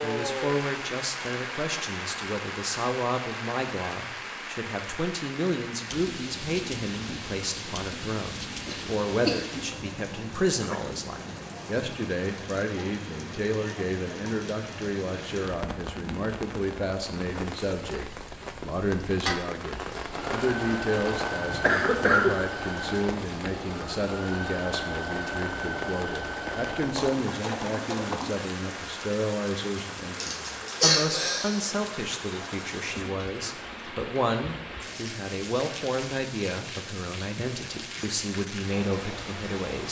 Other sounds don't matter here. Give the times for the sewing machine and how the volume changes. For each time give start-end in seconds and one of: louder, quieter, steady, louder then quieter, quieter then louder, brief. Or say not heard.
20.1-28.4 steady.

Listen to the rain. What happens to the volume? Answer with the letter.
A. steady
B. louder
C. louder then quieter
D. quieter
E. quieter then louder
A.